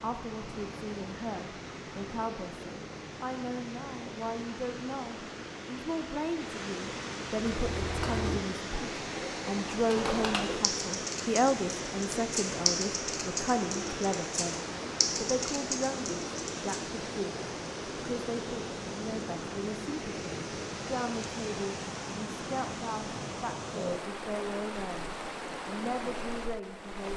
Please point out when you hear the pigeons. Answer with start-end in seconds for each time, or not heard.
7.3-16.9.